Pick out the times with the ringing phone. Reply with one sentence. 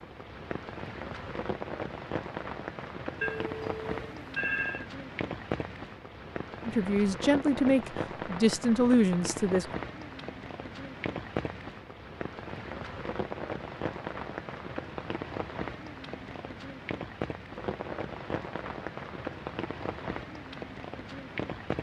The ringing phone can be heard from 3.2 to 4.8 s.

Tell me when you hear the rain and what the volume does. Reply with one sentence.
The rain can be heard from 0.0 to 21.7 s, at a steady volume.